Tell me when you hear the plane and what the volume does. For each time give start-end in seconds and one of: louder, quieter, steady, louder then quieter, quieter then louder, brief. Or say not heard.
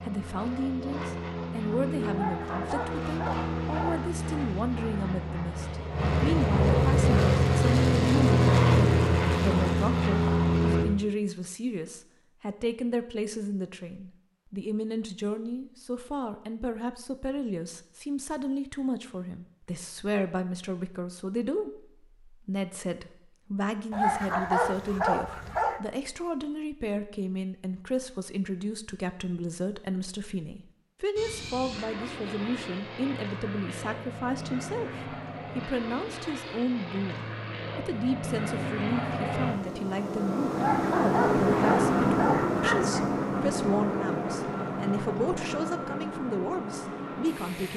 0.0-10.8 louder
31.1-47.7 louder then quieter.